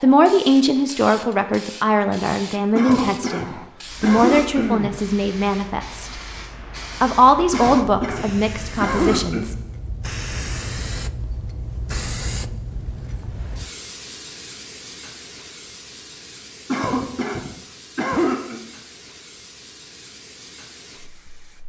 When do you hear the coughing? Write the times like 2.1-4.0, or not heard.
2.8-4.9, 7.5-9.4, 16.7-18.6.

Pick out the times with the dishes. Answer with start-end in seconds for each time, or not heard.
not heard.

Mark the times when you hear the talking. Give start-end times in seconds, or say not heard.
0.0-6.0, 7.0-9.6.